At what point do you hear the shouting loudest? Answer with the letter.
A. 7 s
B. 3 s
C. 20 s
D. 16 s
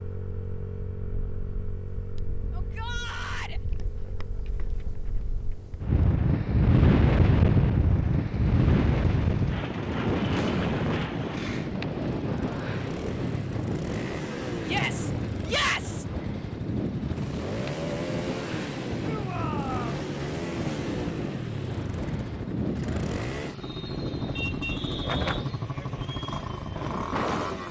D.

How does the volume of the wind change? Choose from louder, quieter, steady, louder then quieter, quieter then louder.
quieter.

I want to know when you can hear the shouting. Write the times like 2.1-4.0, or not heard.
2.5-3.6, 14.7-16.1, 19.0-20.0.